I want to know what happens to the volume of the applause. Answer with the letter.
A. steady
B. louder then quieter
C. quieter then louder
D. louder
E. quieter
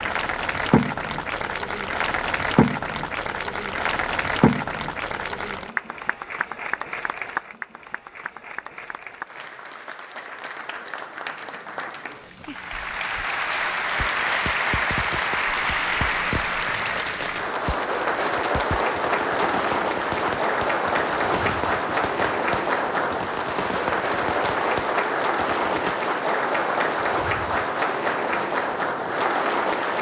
C.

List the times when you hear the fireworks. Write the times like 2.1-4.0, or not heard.
13.9-25.9.